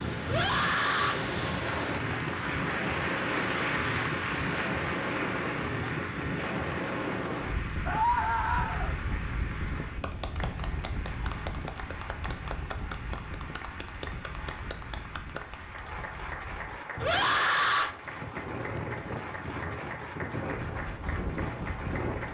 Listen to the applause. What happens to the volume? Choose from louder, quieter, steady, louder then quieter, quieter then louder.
quieter.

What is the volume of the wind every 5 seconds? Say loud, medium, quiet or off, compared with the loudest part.
loud, loud, medium, medium, loud.